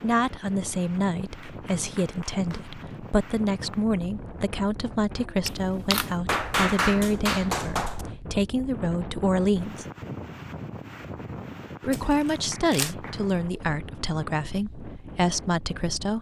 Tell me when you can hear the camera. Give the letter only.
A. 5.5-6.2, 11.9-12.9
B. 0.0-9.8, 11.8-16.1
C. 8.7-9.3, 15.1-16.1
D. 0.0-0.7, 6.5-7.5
A.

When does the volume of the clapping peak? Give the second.
7 s.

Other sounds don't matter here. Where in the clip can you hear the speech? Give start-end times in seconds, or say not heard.
0.0-9.8, 11.8-16.1.